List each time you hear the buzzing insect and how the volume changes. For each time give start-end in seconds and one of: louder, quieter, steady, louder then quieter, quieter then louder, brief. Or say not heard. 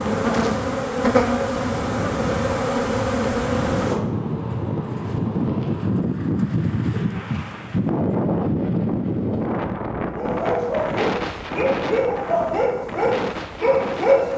0.0-6.0 quieter.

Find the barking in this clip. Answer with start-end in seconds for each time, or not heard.
10.2-14.3.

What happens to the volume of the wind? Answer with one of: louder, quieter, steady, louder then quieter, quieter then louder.
louder then quieter.